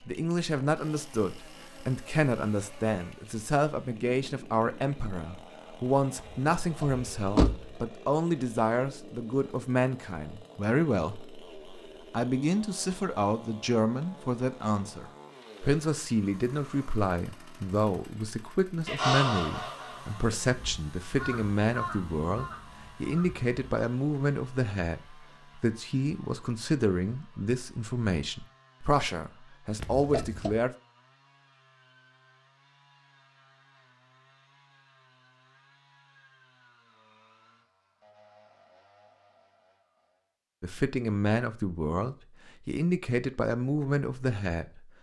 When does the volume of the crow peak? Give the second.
19 s.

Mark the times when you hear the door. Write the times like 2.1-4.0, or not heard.
6.2-7.7, 29.8-30.6.